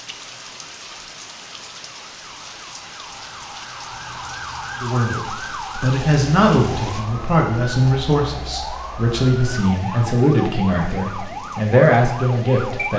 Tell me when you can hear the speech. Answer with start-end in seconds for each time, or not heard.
4.8-12.9.